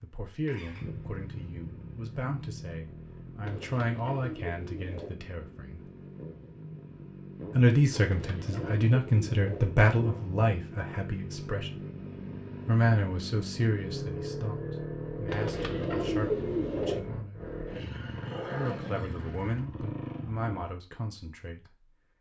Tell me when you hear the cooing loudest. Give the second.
16 s.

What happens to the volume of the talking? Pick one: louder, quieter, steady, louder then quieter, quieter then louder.
louder then quieter.